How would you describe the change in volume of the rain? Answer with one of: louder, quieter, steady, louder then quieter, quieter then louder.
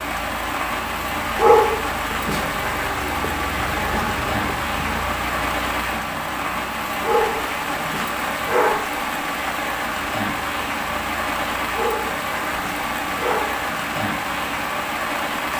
steady.